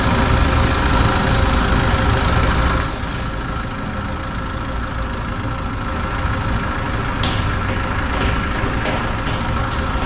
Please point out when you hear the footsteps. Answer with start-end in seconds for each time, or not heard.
0.0-3.4, 7.0-10.0.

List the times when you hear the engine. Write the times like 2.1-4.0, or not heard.
0.0-10.0.